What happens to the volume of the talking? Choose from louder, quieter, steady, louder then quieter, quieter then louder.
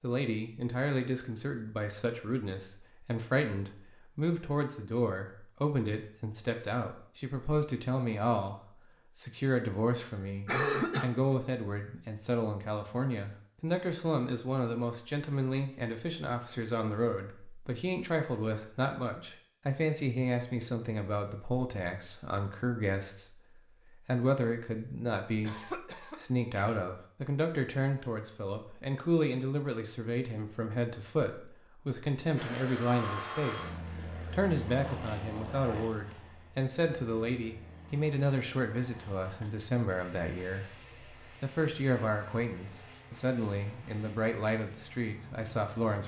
steady.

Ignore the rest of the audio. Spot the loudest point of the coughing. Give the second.
11 s.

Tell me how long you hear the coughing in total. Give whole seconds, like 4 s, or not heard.
3 s.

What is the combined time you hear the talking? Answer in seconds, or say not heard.
46 s.